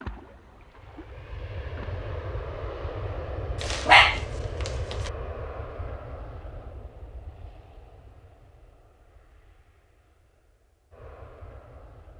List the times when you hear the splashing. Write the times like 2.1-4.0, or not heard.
0.0-2.1.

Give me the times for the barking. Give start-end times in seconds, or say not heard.
3.6-5.1.